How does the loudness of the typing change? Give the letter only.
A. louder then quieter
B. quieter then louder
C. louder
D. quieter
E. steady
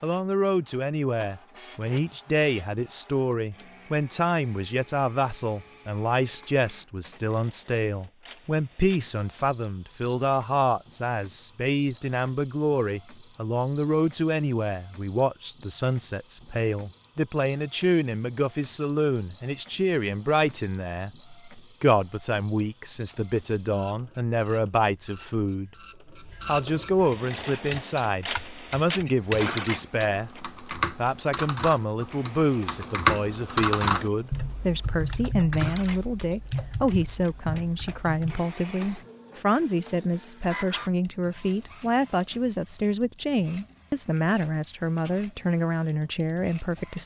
A.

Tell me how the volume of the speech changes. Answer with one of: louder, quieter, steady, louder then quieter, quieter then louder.
steady.